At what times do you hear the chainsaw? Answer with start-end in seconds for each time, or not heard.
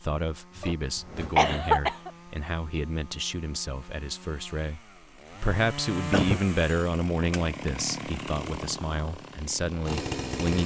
0.0-10.6.